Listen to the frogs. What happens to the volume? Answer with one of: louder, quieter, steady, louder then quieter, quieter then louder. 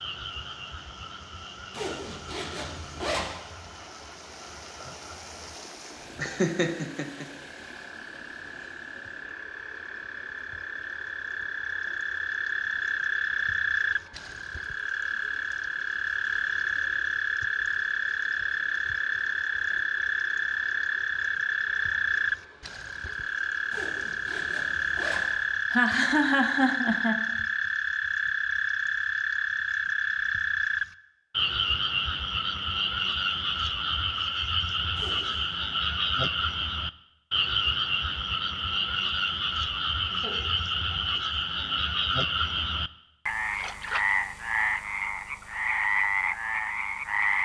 louder.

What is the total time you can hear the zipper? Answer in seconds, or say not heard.
4 s.